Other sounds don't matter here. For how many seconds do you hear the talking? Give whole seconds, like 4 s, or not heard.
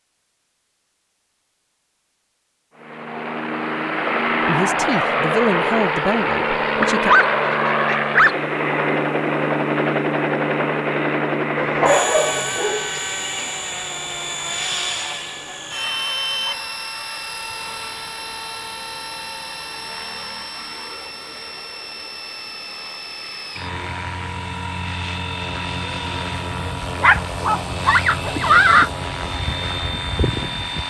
3 s.